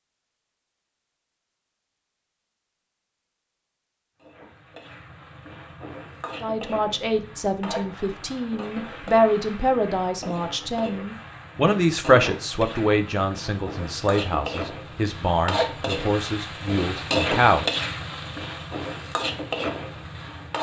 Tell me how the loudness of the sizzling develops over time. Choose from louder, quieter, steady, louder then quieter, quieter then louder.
louder.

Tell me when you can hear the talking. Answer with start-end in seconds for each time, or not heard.
6.4-17.8.